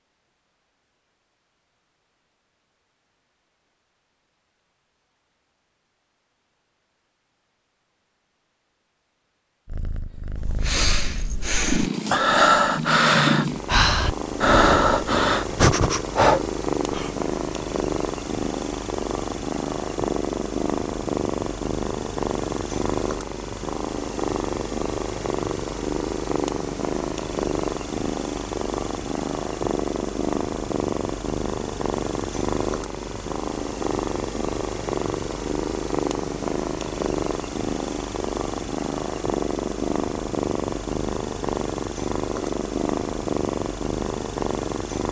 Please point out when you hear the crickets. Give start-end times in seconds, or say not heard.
not heard.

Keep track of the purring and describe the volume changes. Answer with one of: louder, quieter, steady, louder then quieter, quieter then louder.
steady.